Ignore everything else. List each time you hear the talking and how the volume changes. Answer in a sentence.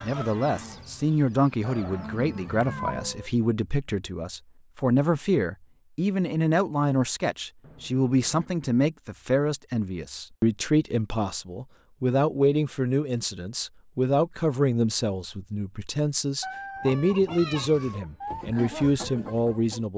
You can hear the talking from 0.0 to 19.9 s, at a steady volume.